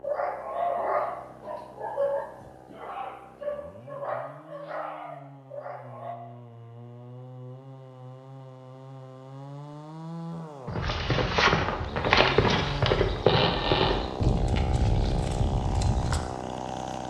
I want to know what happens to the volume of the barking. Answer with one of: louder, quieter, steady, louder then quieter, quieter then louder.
quieter.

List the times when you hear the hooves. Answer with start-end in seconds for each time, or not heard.
10.7-16.2.